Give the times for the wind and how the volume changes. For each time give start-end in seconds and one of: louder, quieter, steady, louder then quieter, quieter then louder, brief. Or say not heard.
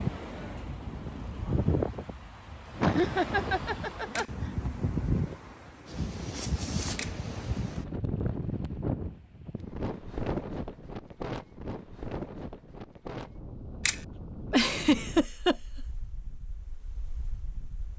0.0-17.9 quieter.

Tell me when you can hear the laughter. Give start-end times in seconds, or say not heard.
2.8-4.7, 14.5-15.6.